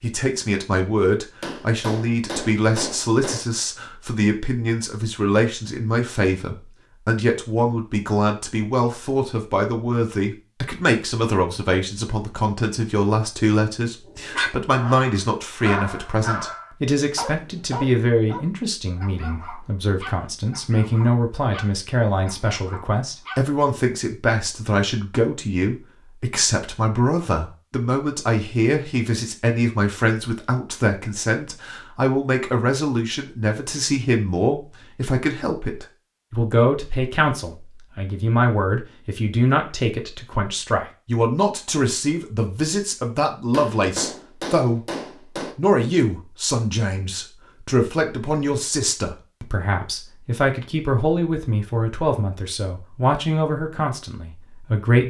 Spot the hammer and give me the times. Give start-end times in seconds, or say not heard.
1.4-3.4, 43.5-45.5.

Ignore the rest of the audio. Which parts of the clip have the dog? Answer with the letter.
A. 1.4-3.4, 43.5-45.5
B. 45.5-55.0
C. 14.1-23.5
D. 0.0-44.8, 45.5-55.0
C.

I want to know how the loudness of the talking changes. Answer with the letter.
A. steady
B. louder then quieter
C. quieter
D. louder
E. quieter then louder
A.